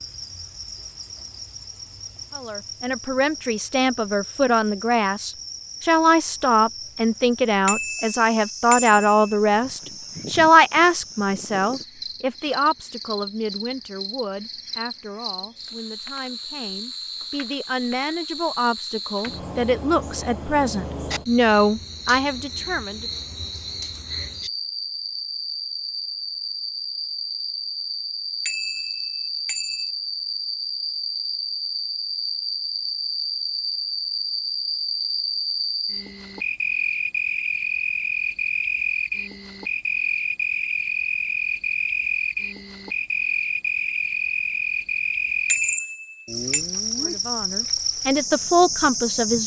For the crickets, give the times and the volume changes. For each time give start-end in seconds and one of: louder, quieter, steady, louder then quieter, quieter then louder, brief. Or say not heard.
0.0-49.4 louder.